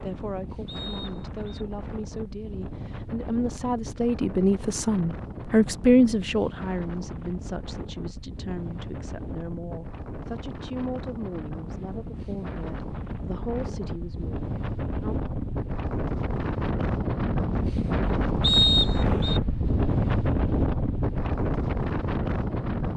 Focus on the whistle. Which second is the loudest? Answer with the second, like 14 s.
19 s.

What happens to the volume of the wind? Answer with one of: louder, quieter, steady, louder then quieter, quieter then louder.
louder.